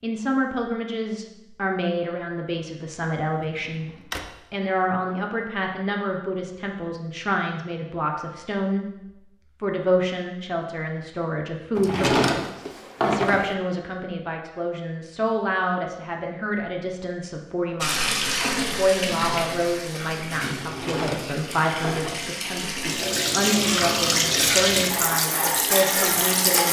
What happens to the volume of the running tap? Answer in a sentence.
The volume of the running tap goes down, then up.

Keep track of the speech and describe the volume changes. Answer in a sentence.
The loudness of the speech stays about the same.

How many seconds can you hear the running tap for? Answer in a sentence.
You can hear the running tap for 9 seconds altogether.